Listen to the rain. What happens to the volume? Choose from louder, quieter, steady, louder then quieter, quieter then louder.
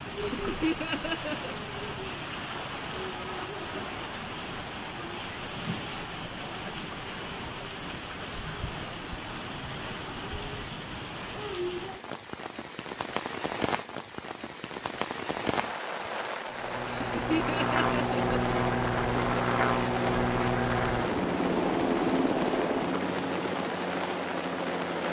steady.